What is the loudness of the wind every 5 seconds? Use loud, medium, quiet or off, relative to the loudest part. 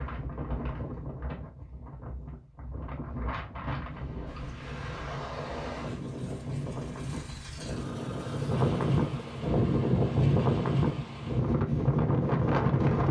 quiet, medium, loud.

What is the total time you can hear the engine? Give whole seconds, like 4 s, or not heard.
5 s.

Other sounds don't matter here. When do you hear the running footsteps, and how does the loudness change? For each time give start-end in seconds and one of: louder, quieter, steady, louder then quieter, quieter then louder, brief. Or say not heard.
not heard.